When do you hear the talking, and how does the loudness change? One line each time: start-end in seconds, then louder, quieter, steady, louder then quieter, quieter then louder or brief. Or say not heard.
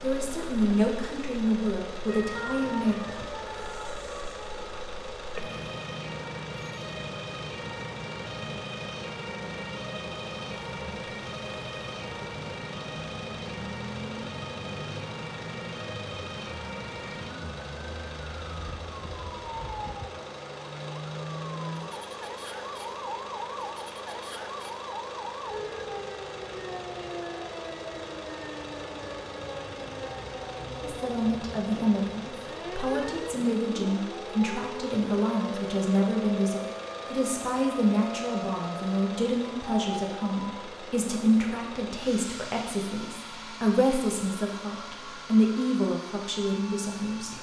0.0-3.0 brief
30.8-47.3 steady.